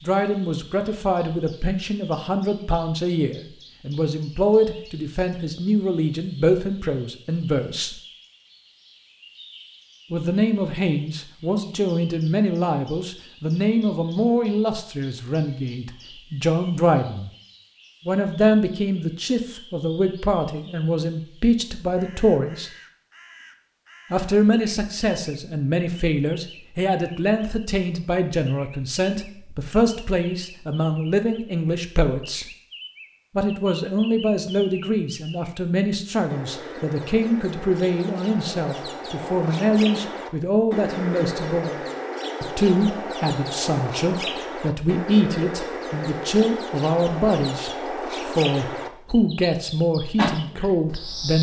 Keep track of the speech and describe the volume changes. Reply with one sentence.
The volume of the speech stays about the same.